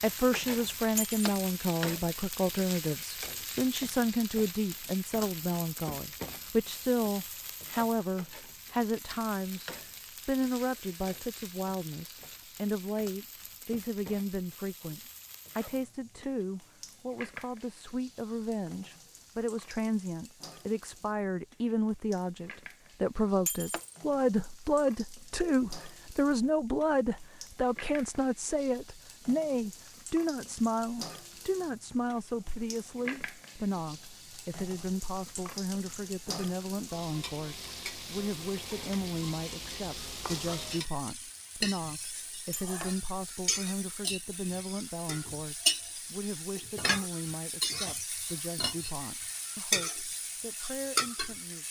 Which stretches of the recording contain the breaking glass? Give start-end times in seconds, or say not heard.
0.9-1.4, 23.4-23.9, 42.5-43.0.